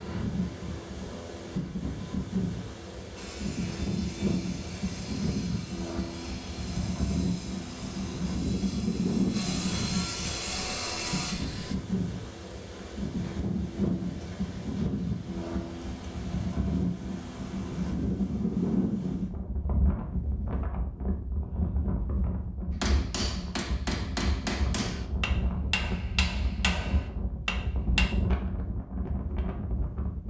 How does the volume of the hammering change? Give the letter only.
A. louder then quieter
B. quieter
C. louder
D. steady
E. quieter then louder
D.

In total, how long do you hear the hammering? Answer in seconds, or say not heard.
5 s.